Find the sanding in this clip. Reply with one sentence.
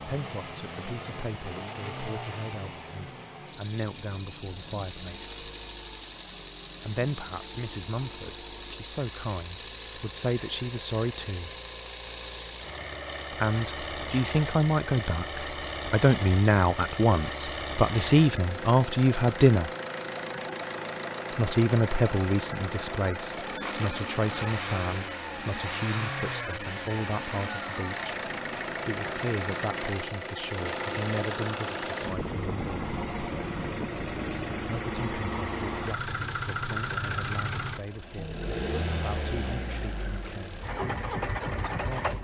The sanding can't be heard in this clip.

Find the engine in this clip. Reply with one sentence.
You can hear the engine from 0.0 to 42.1 s.